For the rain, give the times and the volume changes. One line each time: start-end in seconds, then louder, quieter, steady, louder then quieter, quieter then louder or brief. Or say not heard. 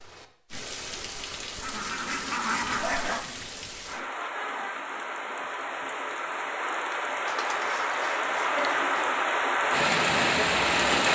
0.0-11.0 louder.